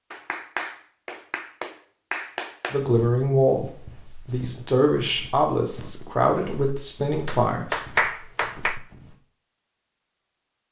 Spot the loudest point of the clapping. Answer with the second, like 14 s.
8 s.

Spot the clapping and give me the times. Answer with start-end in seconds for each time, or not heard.
0.1-2.8, 7.2-8.8.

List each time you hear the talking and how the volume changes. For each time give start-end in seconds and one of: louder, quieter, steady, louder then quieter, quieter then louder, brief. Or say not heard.
2.7-7.8 steady.